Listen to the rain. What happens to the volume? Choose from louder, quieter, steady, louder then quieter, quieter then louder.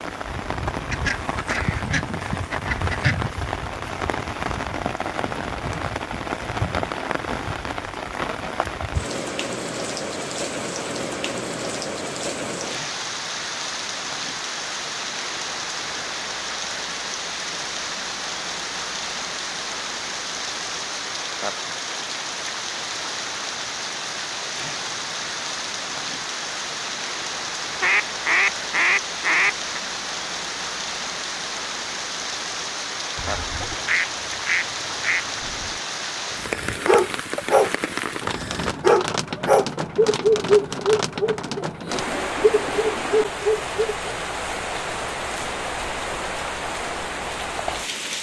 steady.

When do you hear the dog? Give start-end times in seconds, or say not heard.
36.4-44.1.